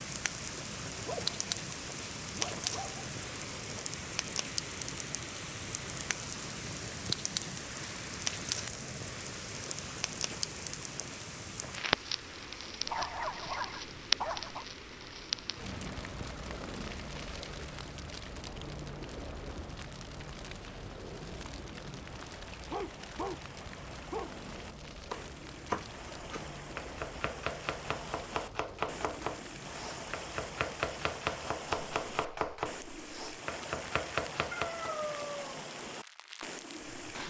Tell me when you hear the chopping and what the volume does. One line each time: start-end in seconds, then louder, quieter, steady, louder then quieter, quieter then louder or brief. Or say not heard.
25.1-35.0 steady.